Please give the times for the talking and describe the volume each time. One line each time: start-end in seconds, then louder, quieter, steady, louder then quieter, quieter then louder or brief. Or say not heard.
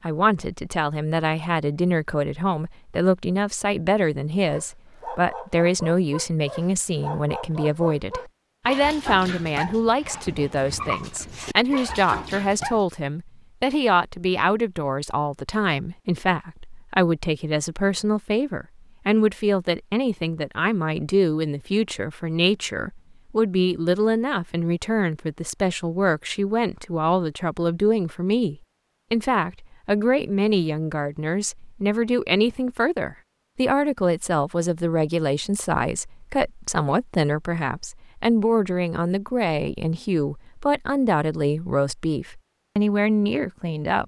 0.0-44.0 steady.